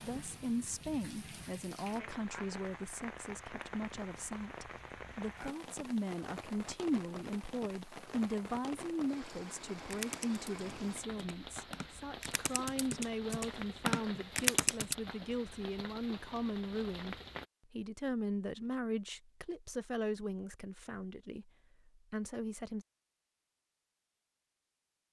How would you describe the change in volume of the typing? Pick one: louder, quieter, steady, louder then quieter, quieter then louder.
louder.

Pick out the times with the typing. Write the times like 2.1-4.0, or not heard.
9.9-14.9.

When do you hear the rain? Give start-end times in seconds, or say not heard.
0.0-17.4.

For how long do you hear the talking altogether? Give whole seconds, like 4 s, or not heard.
23 s.